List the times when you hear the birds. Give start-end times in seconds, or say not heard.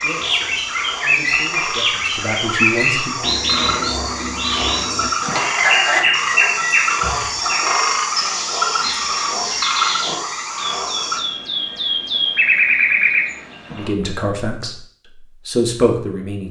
0.0-13.9.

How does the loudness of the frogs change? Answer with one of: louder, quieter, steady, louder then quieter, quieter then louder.
louder.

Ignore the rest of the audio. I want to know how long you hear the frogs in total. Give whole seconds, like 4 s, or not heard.
11 s.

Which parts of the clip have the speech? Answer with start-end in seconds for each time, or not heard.
0.0-3.2, 13.7-14.8, 15.4-16.4.